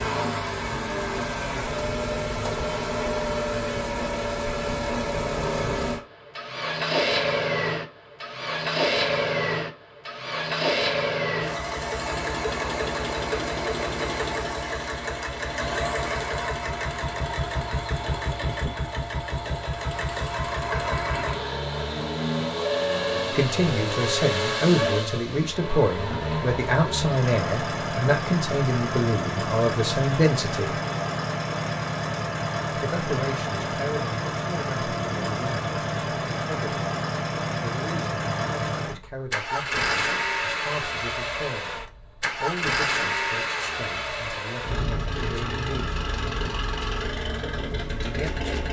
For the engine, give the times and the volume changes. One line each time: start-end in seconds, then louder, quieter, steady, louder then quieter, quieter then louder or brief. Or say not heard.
0.0-48.6 steady.